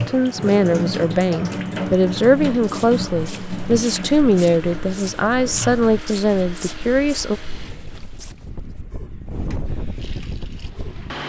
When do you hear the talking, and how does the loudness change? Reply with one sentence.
The talking can be heard from 0.1 to 7.4 s, at a steady volume.